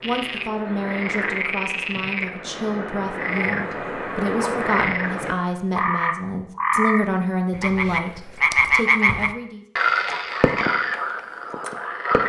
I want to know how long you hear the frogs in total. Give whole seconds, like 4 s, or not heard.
12 s.